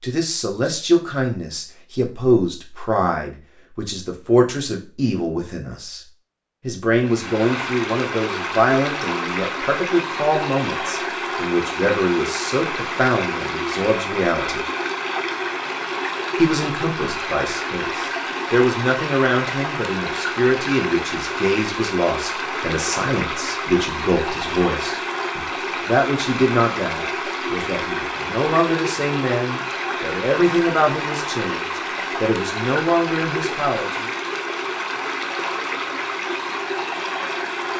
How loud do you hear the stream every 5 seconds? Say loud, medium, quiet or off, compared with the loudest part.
off, loud, loud, loud, loud, loud, loud, loud.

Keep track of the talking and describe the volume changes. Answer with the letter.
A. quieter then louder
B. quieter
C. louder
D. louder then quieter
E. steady
E.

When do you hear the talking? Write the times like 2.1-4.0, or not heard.
0.0-6.0, 6.6-14.7, 16.4-34.1.